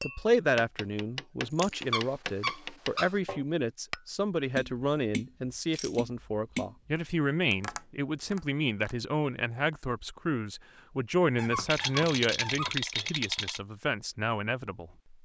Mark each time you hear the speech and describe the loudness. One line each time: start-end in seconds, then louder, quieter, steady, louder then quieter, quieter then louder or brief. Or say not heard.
0.0-14.9 steady.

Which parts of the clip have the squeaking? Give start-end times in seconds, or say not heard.
1.7-3.1, 11.3-12.8.